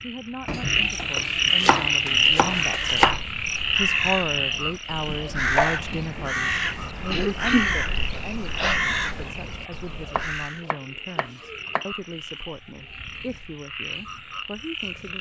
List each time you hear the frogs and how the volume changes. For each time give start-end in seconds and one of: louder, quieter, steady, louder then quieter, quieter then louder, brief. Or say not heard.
0.0-15.1 quieter.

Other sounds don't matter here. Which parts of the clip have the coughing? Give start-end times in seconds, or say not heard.
7.1-8.8.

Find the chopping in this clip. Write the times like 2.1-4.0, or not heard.
0.5-3.2, 5.0-6.2, 10.2-11.8.